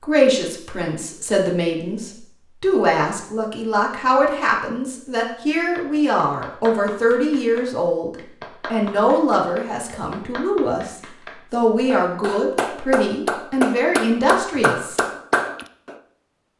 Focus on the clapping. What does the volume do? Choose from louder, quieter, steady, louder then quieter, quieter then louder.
louder.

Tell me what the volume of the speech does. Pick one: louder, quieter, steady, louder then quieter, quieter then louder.
steady.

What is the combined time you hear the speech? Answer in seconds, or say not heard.
15 s.